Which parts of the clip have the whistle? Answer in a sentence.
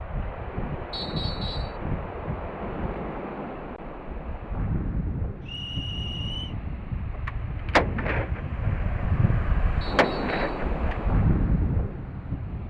The whistle can be heard from 0.9 to 1.8 s, from 5.5 to 6.5 s and from 9.8 to 10.7 s.